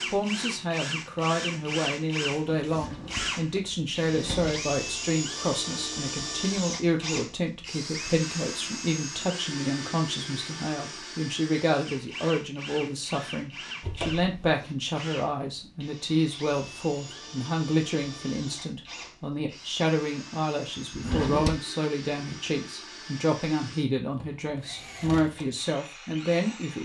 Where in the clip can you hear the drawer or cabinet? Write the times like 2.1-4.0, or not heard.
2.6-4.5, 13.8-14.2, 20.9-21.6.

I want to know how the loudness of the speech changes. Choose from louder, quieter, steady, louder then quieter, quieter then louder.
steady.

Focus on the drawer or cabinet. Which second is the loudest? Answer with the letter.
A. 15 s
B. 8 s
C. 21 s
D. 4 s
C.